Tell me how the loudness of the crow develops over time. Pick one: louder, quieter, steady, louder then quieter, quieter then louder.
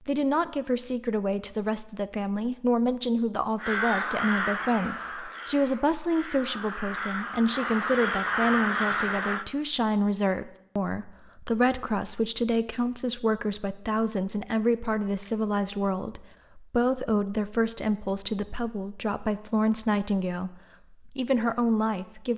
quieter then louder.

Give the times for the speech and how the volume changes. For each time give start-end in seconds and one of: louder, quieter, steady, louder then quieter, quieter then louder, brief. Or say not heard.
0.1-22.3 steady.